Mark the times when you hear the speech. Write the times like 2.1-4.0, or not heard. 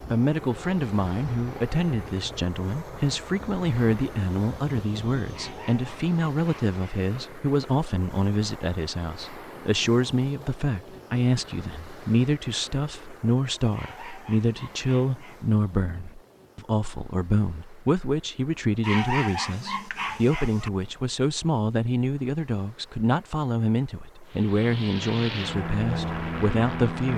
0.1-27.1.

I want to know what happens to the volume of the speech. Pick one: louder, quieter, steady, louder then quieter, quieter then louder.
steady.